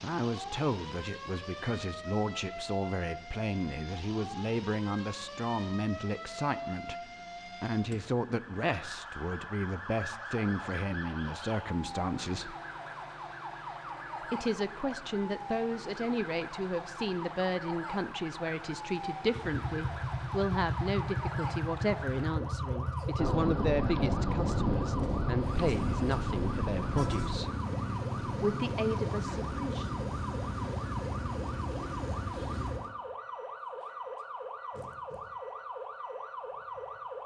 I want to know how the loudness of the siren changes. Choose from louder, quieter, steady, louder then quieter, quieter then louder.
steady.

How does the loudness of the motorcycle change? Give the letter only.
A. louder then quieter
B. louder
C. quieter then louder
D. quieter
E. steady
E.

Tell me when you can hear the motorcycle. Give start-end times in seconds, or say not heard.
19.4-33.0.